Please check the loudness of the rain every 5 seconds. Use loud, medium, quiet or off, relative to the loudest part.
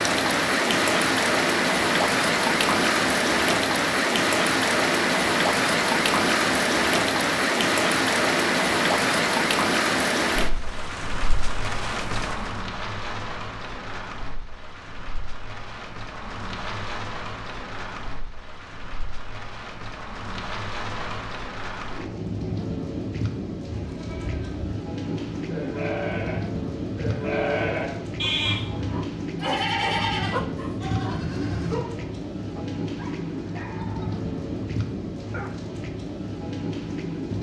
loud, loud, medium, quiet, medium, medium, medium, medium.